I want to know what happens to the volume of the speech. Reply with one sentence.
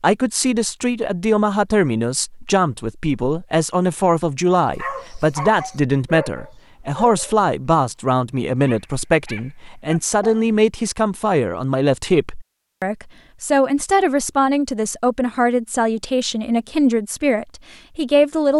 The volume of the speech stays about the same.